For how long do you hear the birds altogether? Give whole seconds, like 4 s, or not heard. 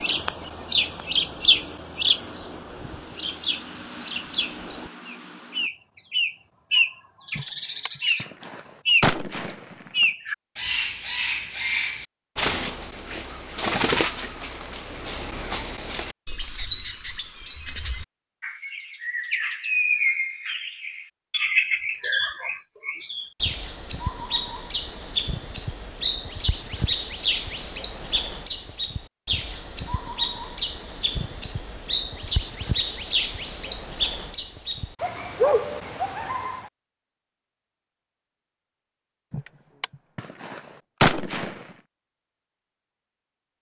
37 s.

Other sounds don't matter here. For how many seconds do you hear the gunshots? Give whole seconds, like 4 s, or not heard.
5 s.